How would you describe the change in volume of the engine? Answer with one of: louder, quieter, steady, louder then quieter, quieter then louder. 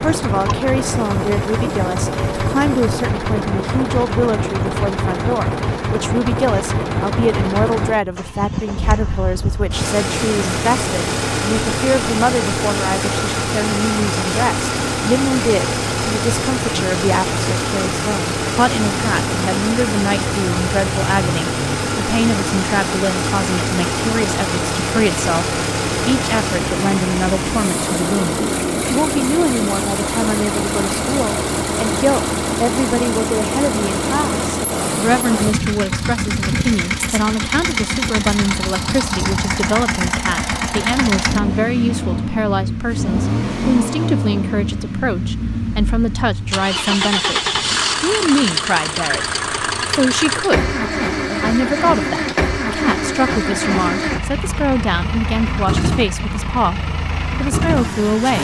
steady.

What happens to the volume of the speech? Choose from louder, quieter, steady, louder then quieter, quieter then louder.
steady.